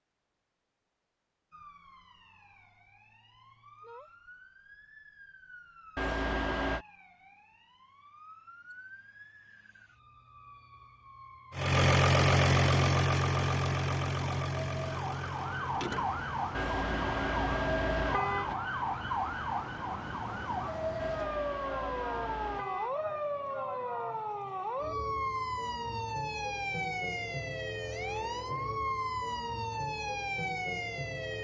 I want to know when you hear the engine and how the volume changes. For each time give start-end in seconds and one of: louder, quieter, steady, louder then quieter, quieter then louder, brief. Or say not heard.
11.5-18.6 quieter.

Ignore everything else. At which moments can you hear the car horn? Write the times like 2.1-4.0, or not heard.
6.0-6.8, 16.6-18.6, 20.9-22.9.